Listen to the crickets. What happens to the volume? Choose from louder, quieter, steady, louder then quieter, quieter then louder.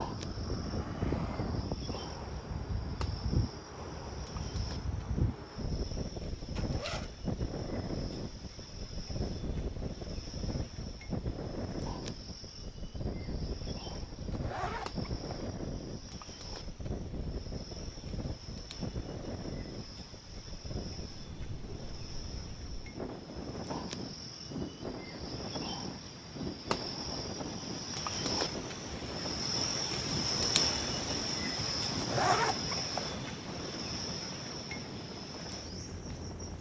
louder.